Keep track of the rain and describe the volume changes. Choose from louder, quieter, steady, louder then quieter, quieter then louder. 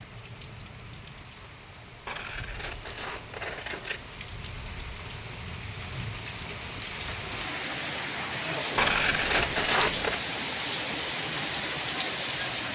louder.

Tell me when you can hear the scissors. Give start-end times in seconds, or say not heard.
2.0-4.0, 8.8-10.2.